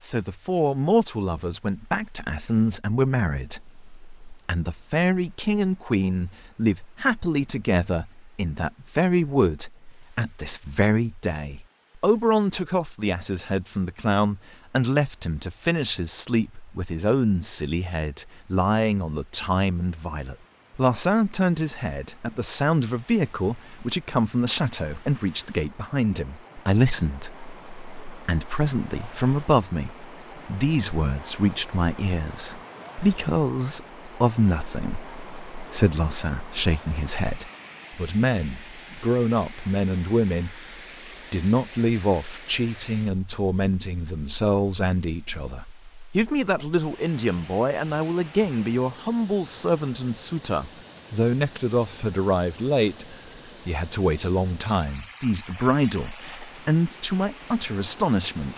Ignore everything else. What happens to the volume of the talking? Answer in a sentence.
The loudness of the talking stays about the same.